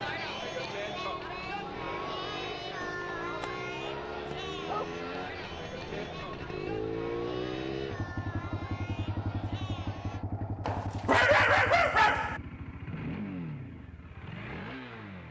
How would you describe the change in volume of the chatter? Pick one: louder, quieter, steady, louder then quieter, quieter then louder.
quieter.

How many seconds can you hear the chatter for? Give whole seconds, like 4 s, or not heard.
10 s.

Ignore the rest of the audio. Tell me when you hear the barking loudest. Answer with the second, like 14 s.
11 s.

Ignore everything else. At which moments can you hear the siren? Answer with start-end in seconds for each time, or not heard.
not heard.